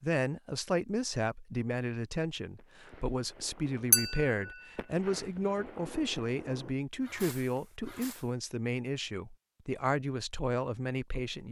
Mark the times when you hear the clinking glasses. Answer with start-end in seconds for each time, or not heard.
3.9-4.5.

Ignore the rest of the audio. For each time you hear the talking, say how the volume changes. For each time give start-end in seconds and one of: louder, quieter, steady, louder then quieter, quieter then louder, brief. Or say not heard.
0.0-11.4 steady.